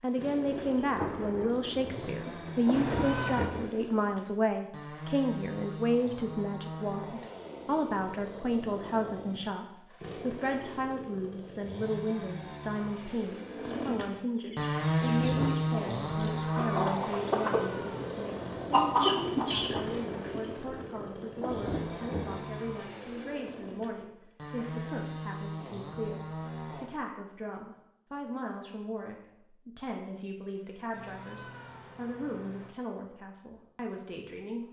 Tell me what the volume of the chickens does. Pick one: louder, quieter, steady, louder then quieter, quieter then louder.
louder.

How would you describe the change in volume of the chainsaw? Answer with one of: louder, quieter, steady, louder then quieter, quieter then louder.
louder then quieter.